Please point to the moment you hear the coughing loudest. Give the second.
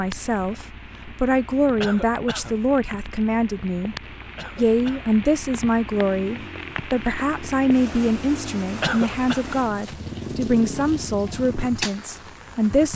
9 s.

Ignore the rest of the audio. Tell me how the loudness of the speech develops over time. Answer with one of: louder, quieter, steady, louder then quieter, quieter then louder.
steady.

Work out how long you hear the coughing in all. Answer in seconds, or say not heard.
2 s.